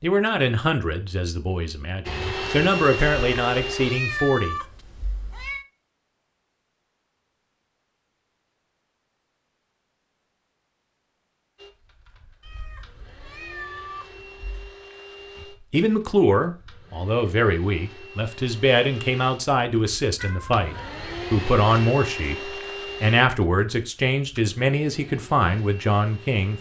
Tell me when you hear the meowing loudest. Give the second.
4 s.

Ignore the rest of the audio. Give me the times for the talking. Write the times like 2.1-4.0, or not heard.
0.0-4.5, 15.4-26.5.